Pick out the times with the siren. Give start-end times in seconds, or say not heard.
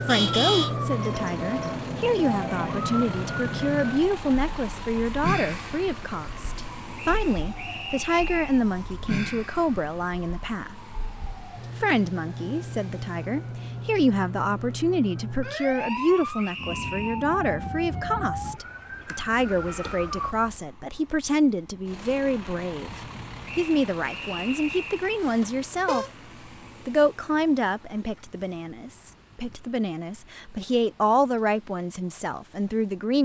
0.0-20.4.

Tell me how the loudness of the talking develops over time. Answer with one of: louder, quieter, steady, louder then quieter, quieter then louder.
steady.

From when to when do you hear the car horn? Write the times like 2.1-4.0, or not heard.
0.1-0.8, 19.5-20.6, 25.4-26.1.